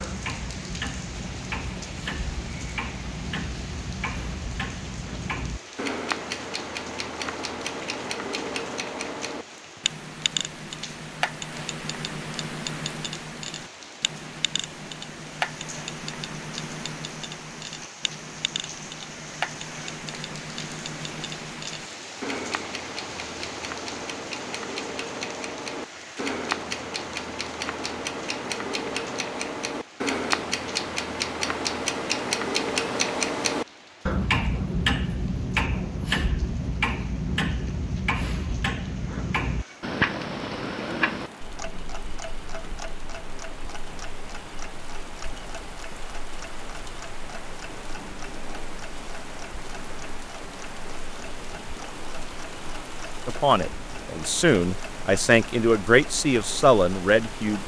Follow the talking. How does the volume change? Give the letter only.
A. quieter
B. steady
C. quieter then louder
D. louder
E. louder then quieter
D.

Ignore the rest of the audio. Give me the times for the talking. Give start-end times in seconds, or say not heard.
53.2-57.6.